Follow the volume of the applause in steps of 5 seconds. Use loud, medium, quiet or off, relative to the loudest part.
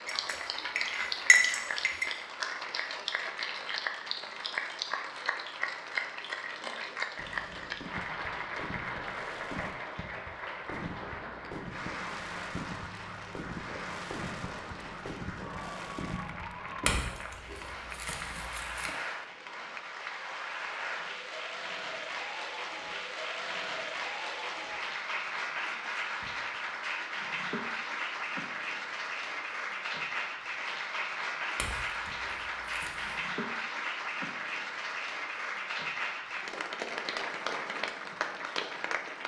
loud, loud, medium, medium, loud, loud, loud, loud.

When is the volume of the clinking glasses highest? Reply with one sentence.
The loudest moment of the clinking glasses is at 1 second.